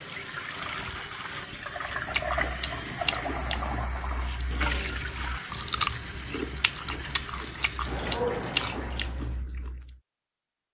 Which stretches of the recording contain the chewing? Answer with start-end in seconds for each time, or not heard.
1.6-10.0.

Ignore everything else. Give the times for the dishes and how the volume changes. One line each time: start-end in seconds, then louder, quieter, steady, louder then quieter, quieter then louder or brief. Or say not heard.
not heard.